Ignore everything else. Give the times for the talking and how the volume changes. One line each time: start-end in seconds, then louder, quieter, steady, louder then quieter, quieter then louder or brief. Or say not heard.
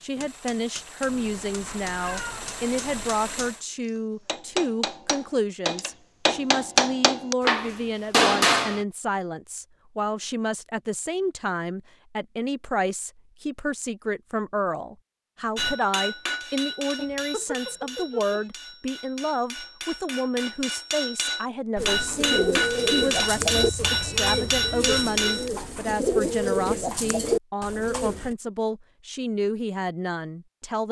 0.0-30.8 steady.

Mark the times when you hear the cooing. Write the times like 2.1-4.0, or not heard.
21.8-28.4.